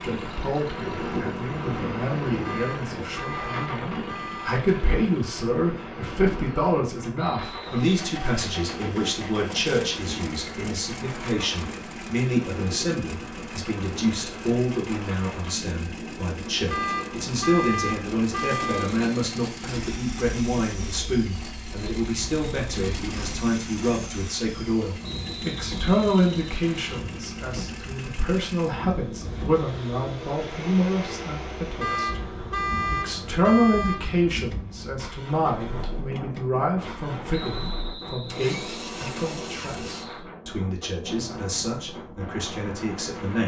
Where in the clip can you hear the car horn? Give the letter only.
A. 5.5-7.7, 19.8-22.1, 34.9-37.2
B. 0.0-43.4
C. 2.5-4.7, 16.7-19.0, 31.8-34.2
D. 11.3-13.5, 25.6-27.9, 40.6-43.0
C.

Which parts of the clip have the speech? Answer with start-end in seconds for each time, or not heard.
0.0-43.4.